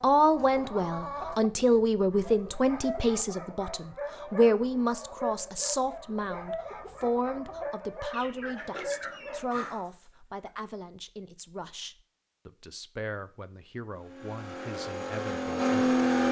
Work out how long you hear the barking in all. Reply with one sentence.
The barking can be heard for 8 seconds in total.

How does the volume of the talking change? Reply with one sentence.
The loudness of the talking goes down.